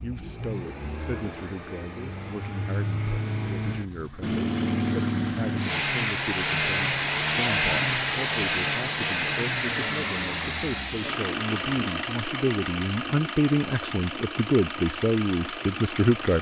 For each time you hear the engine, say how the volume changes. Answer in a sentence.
You can hear the engine from 0.0 to 16.3 s, getting louder then quieter.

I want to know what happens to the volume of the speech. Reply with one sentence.
The loudness of the speech goes up.